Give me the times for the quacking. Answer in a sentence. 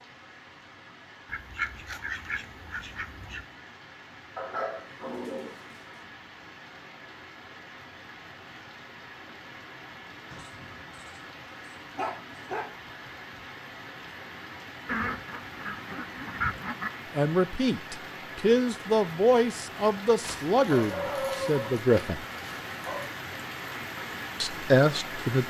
The quacking can be heard from 1.2 to 3.5 s and from 14.8 to 16.9 s.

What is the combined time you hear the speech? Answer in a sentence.
The speech can be heard for 6 seconds in total.